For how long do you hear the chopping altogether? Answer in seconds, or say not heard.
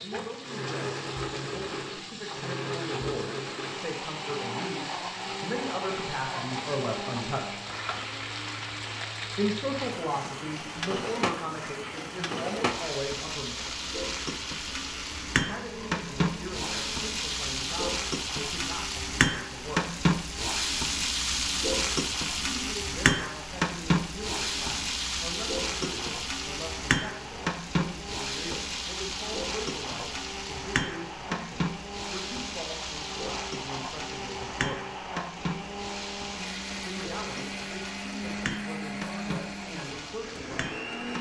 not heard.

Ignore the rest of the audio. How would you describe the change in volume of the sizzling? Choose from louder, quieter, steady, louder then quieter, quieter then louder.
louder then quieter.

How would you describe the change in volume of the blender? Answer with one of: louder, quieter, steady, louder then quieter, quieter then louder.
quieter then louder.